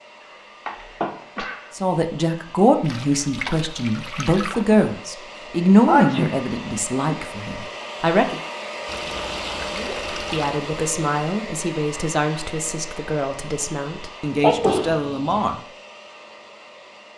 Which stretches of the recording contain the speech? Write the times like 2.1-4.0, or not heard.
1.8-8.4, 9.7-15.6.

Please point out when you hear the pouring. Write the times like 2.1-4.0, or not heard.
2.8-4.7, 8.8-10.6.